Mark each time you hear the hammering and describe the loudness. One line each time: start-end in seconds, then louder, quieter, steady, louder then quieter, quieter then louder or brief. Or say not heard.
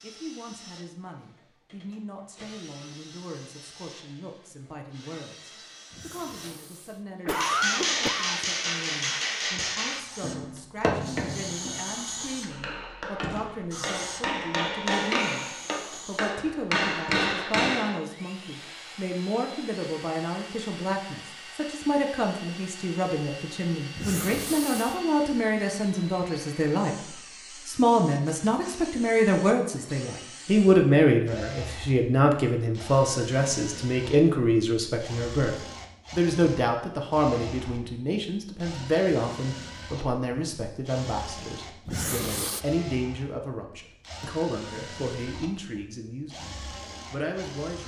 7.3-18.0 quieter then louder.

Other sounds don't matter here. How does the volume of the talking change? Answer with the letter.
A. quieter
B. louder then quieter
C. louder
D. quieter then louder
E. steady
B.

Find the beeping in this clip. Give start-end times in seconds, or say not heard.
not heard.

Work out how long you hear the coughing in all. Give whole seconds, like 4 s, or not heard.
4 s.